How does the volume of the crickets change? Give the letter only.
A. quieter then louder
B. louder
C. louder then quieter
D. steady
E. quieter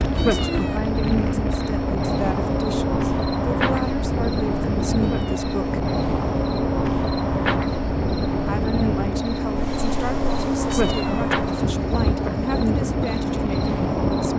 D.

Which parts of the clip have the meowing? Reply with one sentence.
You can hear the meowing from 0.1 to 0.8 s, from 5.0 to 5.5 s and from 10.7 to 11.3 s.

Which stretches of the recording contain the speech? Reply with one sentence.
You can hear the speech from 0.1 to 5.8 s and from 8.4 to 14.3 s.